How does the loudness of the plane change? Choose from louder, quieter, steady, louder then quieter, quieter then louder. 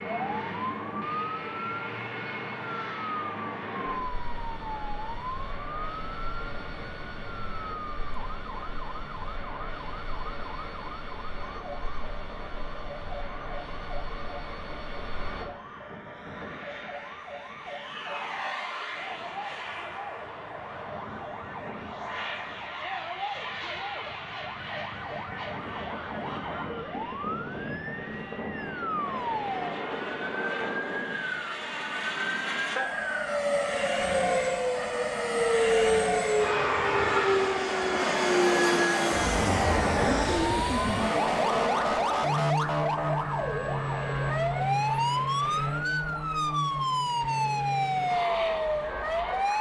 louder.